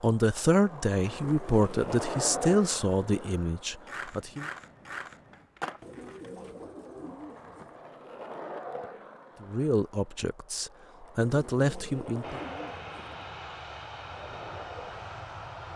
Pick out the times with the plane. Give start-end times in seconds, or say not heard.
12.2-15.7.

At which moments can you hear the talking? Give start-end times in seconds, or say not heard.
0.0-4.5, 9.4-12.4.